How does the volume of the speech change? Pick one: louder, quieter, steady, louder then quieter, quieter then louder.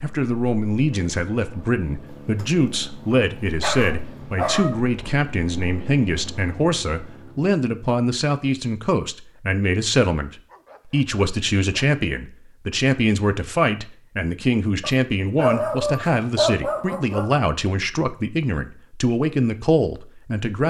steady.